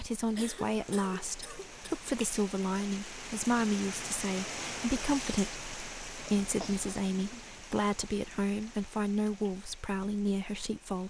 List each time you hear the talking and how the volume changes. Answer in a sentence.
You can hear the talking from 0.0 to 11.0 s, at a steady volume.